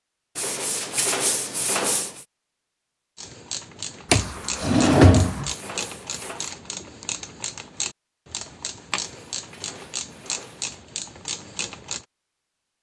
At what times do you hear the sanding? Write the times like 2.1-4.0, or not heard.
0.3-2.2, 4.2-6.5, 8.9-10.8.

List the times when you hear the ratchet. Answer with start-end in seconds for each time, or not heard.
3.1-12.1.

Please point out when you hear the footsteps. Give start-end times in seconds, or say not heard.
not heard.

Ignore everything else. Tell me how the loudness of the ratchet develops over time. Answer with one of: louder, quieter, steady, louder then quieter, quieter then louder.
steady.